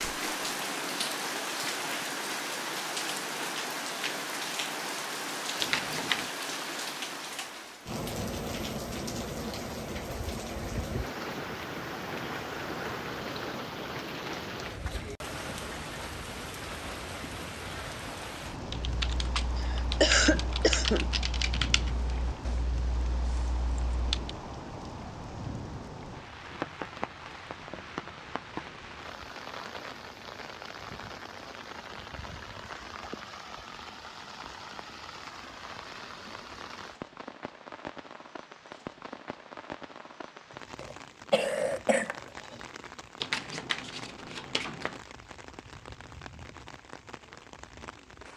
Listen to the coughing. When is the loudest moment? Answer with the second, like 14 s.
20 s.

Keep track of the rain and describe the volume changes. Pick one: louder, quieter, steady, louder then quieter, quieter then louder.
quieter.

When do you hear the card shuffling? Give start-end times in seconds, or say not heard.
5.6-6.3, 43.2-45.0.